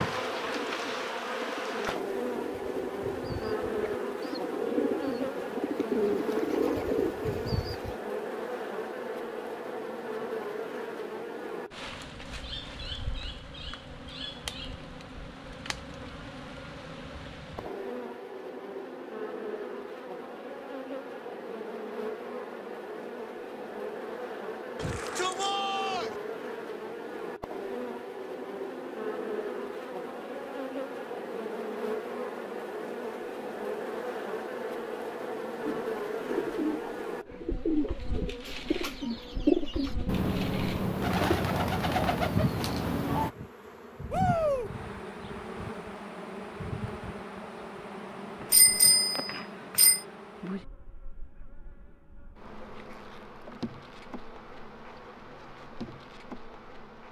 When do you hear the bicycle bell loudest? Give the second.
49 s.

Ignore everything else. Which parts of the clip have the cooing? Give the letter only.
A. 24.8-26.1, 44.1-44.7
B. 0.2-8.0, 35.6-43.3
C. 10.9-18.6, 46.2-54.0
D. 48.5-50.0
B.